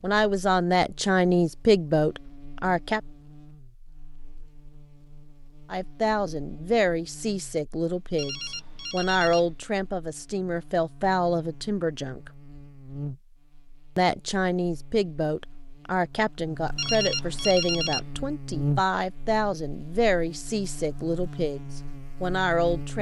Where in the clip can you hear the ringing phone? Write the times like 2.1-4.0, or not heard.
8.2-9.6, 16.8-18.1.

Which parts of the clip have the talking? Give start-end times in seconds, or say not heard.
0.0-3.0, 5.7-12.3, 13.9-22.9.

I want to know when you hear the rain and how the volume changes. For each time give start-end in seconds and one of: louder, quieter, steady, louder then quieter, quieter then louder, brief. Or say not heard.
not heard.